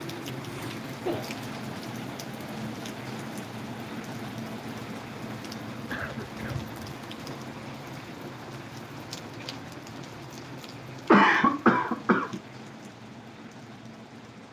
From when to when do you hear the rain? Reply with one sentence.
The rain can be heard from 0.0 to 14.4 s.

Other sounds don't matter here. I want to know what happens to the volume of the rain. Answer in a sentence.
The loudness of the rain goes down.